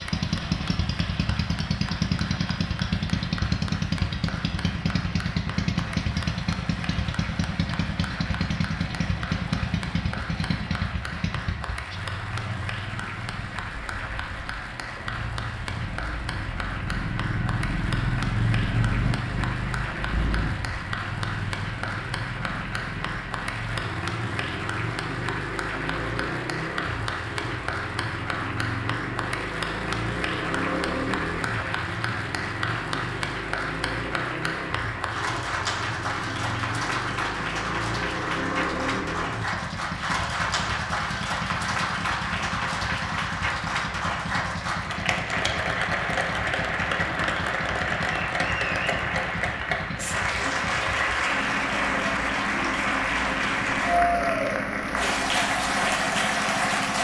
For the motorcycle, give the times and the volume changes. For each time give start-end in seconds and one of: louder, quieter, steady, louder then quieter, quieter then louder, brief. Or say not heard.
0.0-56.9 quieter.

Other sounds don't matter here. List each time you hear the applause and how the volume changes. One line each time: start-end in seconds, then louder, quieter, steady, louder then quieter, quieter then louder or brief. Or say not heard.
0.0-56.9 louder.